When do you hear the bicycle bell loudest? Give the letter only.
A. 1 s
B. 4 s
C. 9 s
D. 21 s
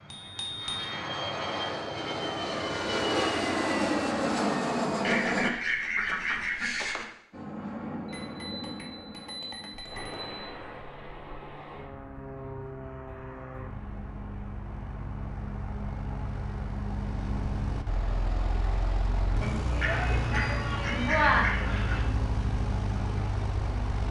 D.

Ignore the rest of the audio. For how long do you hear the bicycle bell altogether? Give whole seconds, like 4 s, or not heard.
5 s.